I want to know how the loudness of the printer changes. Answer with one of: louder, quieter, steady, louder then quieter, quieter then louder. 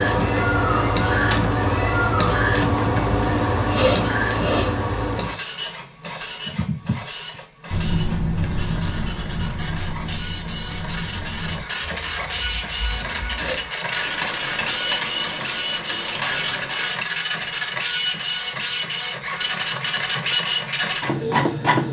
quieter then louder.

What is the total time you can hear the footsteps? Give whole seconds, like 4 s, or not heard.
not heard.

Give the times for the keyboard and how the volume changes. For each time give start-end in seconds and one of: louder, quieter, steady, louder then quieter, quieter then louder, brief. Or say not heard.
6.5-7.0 brief
7.7-17.1 quieter then louder.